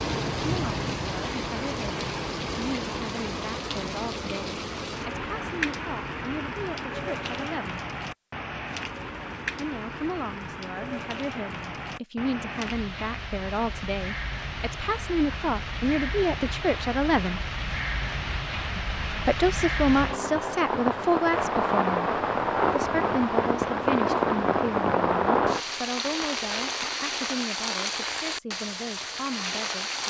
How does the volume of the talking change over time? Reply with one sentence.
The volume of the talking goes up, then down.